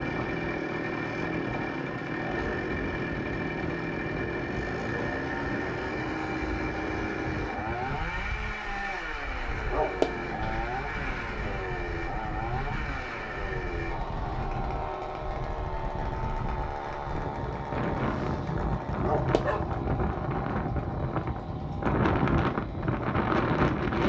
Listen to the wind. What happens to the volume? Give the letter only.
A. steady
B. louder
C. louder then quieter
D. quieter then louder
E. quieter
B.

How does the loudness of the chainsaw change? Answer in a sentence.
The loudness of the chainsaw goes down.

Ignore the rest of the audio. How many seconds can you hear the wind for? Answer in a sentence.
The wind can be heard for 24 seconds in total.